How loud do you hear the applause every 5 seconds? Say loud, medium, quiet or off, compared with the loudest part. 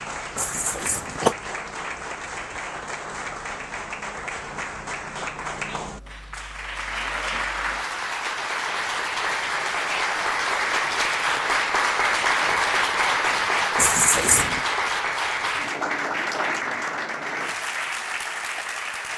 medium, medium, loud, medium.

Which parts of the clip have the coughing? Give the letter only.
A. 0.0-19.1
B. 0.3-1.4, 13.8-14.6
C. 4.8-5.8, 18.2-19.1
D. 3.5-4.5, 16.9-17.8
B.